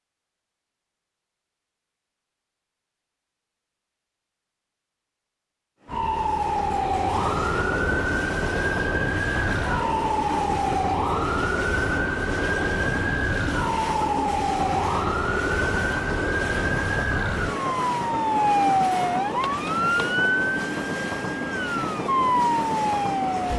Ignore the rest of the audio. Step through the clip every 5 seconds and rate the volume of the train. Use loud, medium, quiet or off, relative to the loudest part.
off, loud, loud, loud, loud.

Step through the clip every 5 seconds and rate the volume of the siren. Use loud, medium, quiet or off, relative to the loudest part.
off, loud, loud, loud, loud.